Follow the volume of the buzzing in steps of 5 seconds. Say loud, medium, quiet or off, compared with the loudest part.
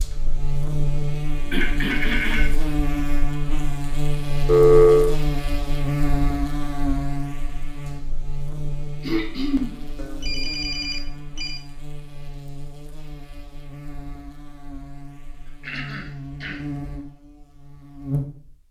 loud, loud, quiet, medium.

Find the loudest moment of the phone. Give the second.
5 s.